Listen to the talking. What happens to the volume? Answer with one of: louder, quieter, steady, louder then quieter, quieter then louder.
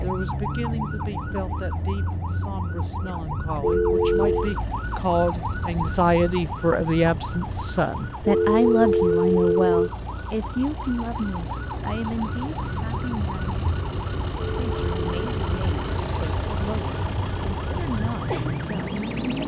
louder then quieter.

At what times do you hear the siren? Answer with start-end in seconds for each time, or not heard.
0.0-19.4.